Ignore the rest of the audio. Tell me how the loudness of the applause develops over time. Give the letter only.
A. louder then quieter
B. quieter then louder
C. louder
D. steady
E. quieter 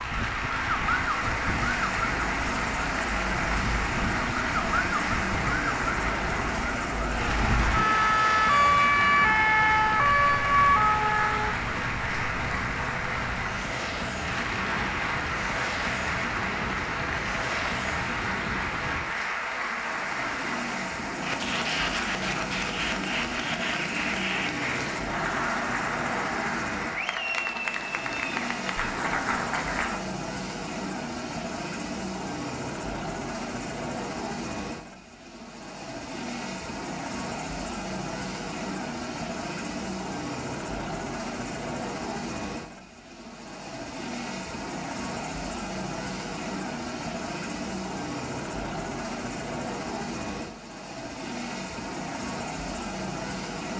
D.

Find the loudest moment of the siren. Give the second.
9 s.